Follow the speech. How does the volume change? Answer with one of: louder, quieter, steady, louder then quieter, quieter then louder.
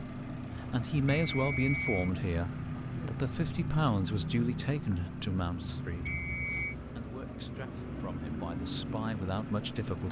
quieter then louder.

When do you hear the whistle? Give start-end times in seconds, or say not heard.
1.3-2.1, 6.0-6.8.